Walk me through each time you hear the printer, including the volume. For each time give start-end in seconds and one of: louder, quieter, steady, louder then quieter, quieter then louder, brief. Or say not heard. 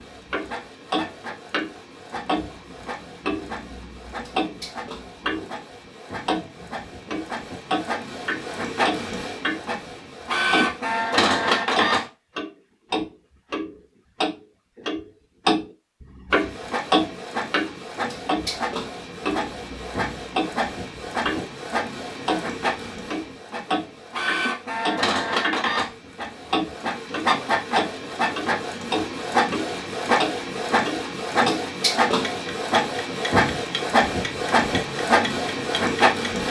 0.0-12.1 louder
16.3-36.4 louder.